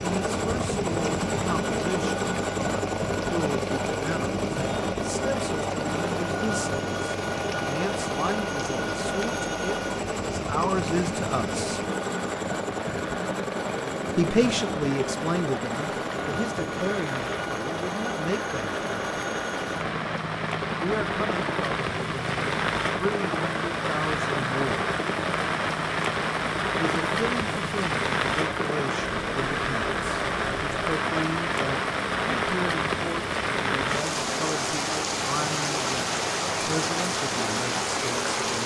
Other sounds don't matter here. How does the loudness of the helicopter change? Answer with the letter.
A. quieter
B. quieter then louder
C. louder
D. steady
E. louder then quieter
A.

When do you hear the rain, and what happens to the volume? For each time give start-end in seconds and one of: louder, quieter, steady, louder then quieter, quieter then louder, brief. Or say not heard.
0.0-38.6 louder.